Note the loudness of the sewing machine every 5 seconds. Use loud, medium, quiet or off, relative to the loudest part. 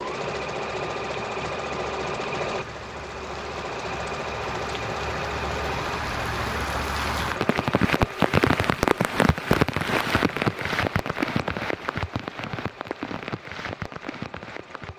loud, loud, quiet.